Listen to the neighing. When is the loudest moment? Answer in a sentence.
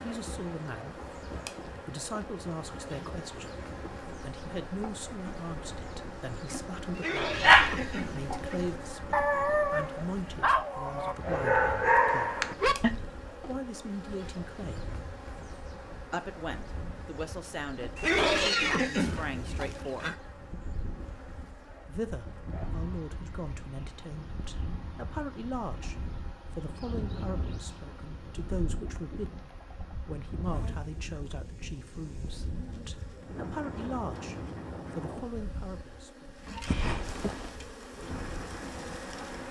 The loudest moment of the neighing is at 18 seconds.